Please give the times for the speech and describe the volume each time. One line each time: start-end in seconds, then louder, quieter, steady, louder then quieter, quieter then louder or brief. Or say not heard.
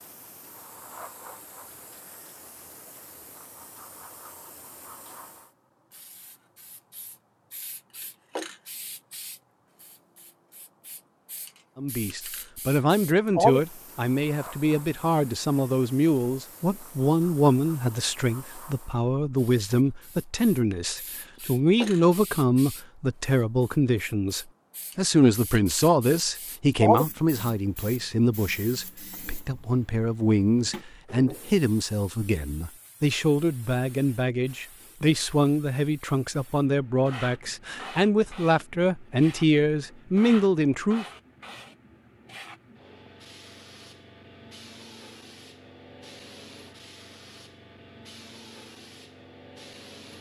11.8-41.0 steady.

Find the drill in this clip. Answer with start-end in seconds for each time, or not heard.
not heard.